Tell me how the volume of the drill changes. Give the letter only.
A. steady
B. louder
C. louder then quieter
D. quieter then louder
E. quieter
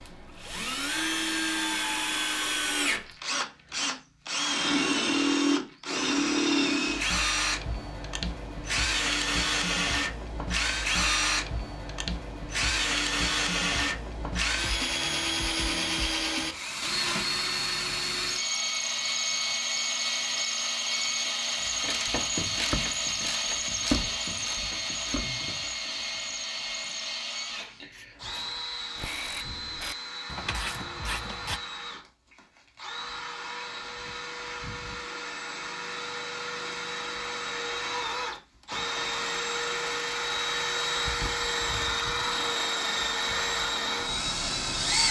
D.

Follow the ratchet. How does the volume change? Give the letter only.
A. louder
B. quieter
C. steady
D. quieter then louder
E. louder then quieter
D.